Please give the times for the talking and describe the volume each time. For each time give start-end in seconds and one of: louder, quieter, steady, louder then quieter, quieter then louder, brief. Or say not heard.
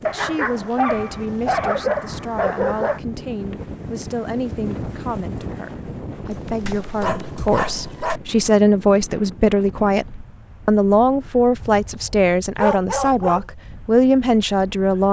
0.0-15.0 louder.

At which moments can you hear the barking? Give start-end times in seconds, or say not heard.
0.1-3.0, 6.3-8.2, 11.6-13.4.